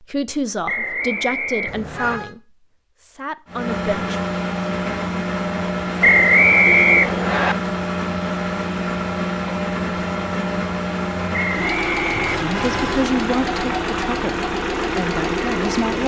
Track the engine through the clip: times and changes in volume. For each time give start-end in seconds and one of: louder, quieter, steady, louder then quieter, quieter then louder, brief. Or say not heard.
3.5-16.0 steady.